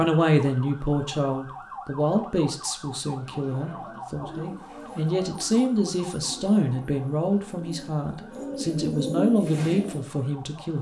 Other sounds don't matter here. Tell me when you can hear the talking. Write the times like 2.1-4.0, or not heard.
0.0-10.7.